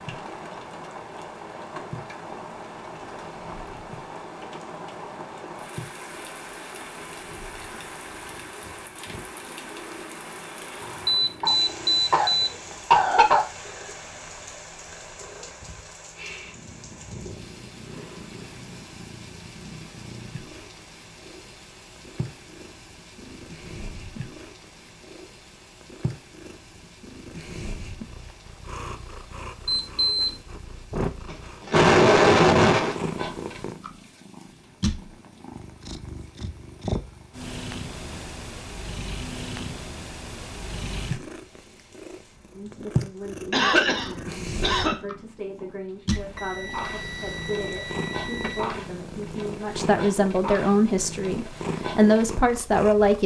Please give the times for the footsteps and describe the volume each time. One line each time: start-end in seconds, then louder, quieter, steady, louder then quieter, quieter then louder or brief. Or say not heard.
not heard.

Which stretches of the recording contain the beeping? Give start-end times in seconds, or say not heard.
10.8-12.5, 29.6-30.4, 46.1-48.7.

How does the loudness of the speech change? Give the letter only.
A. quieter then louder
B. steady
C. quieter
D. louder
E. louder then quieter
D.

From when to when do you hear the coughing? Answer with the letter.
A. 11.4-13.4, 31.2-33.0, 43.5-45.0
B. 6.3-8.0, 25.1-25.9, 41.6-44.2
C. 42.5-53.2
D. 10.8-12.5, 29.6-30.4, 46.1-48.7
A.